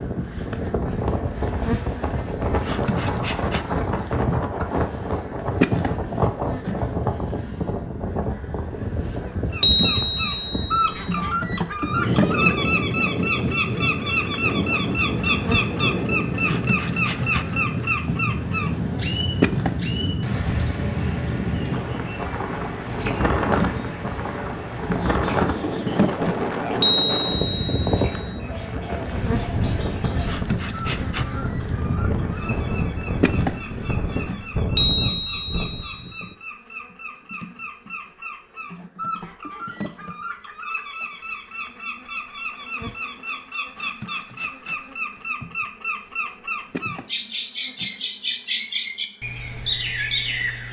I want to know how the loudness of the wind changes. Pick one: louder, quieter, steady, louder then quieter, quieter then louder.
steady.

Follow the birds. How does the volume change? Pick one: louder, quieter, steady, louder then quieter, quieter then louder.
quieter then louder.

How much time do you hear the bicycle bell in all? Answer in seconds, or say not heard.
5 s.